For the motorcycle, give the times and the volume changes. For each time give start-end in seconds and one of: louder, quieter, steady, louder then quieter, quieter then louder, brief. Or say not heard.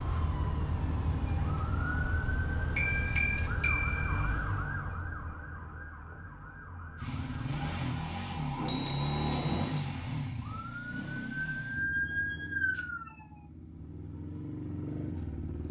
7.0-15.6 quieter then louder.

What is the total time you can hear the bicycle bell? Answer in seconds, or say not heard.
3 s.